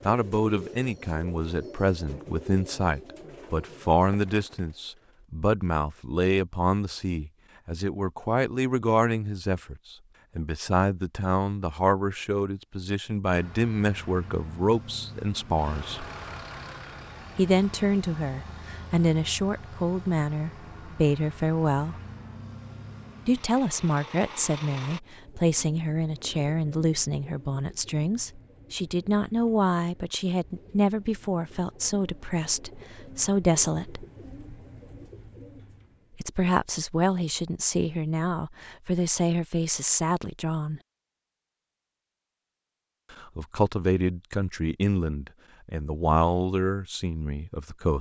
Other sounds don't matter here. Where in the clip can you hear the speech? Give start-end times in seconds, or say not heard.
0.1-16.1, 17.4-21.9, 23.2-34.0, 36.2-40.8, 43.1-47.9.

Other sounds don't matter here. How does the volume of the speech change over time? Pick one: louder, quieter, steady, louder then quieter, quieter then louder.
steady.